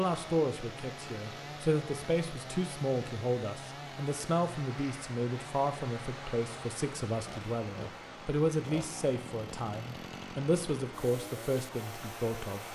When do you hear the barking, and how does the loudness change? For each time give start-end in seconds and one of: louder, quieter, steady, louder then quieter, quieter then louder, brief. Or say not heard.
not heard.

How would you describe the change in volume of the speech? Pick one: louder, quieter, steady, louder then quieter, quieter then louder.
steady.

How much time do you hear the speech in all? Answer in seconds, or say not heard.
13 s.